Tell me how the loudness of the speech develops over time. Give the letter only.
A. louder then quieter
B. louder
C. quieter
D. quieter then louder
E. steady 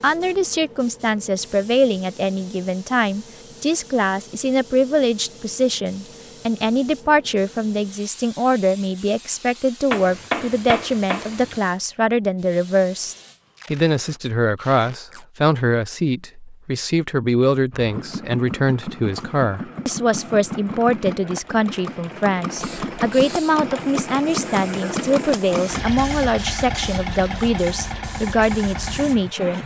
E.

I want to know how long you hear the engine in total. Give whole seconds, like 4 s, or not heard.
12 s.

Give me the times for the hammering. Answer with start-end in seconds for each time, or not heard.
9.9-11.6.